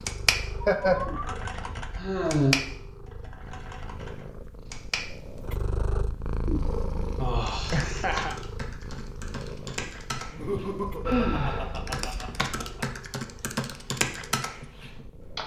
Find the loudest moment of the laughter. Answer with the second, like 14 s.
1 s.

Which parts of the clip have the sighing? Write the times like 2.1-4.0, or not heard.
1.9-2.5, 7.2-7.9, 11.1-11.7.